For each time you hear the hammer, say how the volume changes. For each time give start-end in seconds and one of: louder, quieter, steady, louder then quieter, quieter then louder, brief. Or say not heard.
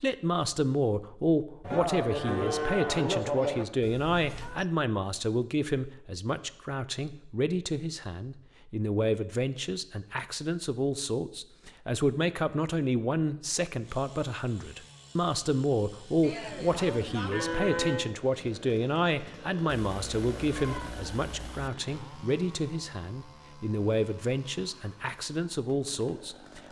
not heard.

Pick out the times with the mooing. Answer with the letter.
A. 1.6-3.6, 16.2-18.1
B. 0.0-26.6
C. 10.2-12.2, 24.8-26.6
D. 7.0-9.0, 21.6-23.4
A.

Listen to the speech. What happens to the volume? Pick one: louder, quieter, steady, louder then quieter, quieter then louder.
steady.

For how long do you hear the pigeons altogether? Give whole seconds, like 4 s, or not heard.
not heard.